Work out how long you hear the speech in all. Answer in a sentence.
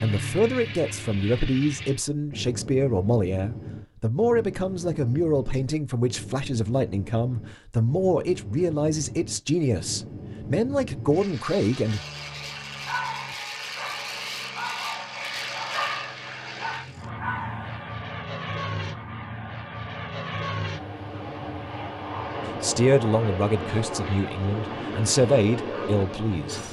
You can hear the speech for 16 seconds altogether.